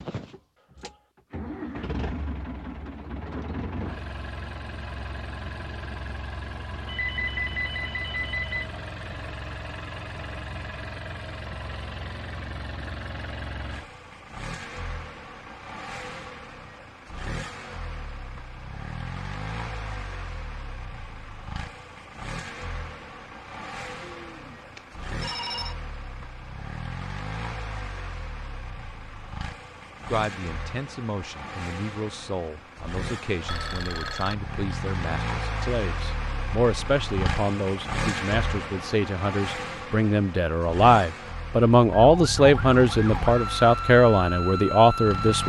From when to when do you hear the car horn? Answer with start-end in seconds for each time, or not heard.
not heard.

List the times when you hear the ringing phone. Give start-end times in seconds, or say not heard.
6.8-8.7, 24.0-25.8, 33.5-34.4.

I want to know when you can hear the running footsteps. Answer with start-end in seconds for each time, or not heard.
not heard.